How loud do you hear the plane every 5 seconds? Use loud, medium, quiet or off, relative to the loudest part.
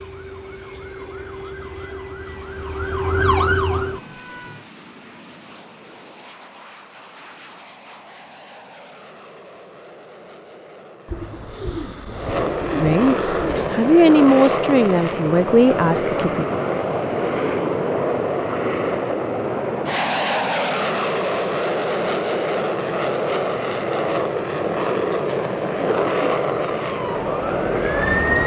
quiet, quiet, loud, loud, loud, loud.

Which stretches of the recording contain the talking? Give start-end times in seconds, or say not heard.
12.8-16.4.